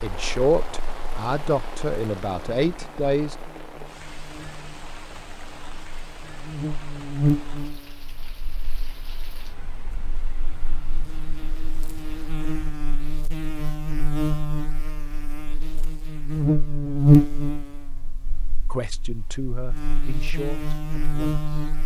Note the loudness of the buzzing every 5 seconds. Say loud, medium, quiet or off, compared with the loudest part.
quiet, medium, medium, loud, medium.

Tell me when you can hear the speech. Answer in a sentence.
You can hear the speech from 0.0 to 3.4 s and from 18.7 to 21.7 s.